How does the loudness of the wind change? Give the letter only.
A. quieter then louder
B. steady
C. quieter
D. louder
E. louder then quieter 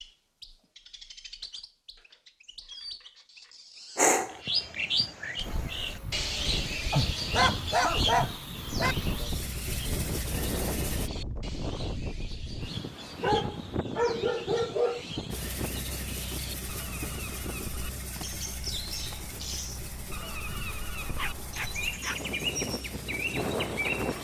A.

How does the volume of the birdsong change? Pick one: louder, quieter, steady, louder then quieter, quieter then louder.
quieter then louder.